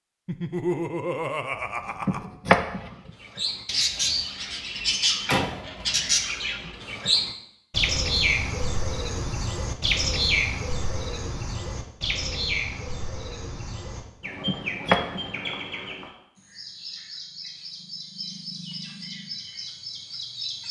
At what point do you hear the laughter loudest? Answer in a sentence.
The loudest moment of the laughter is at 1 second.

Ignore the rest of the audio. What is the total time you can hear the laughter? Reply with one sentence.
You can hear the laughter for 2 seconds altogether.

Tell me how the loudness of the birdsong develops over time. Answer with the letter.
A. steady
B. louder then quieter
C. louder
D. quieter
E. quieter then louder
D.